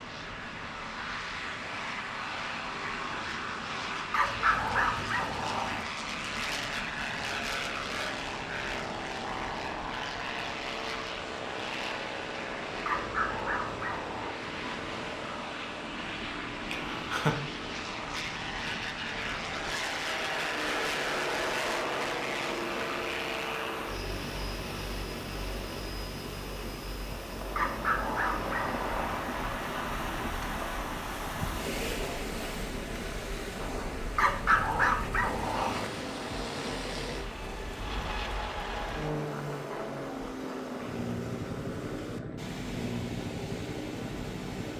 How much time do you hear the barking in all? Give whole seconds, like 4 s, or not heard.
7 s.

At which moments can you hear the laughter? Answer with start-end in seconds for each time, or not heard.
16.7-17.4.